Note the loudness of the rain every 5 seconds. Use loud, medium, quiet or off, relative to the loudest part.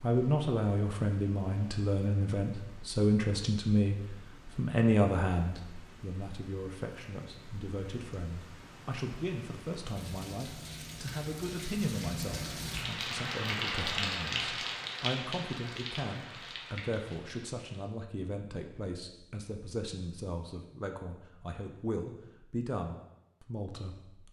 quiet, quiet, loud, medium, off.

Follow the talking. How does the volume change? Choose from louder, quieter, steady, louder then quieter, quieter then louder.
quieter.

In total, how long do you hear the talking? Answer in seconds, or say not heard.
24 s.